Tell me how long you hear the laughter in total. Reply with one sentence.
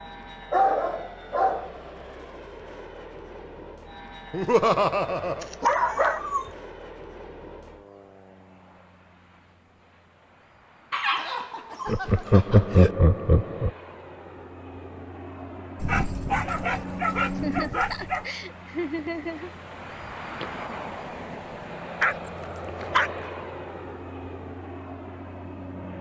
The laughter can be heard for 5 seconds in total.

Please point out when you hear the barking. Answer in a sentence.
The barking can be heard from 0.5 to 1.8 s, from 5.4 to 6.5 s, from 10.9 to 12.9 s, from 15.8 to 18.2 s and from 22.0 to 23.2 s.